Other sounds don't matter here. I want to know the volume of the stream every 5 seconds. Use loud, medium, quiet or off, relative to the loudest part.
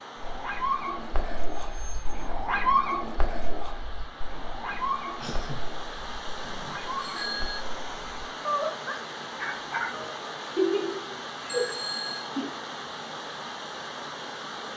medium, loud, loud.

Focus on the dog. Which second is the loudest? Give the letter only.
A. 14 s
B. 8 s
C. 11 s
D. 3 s
D.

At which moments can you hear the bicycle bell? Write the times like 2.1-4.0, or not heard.
1.6-2.2, 6.5-7.7, 11.4-12.3.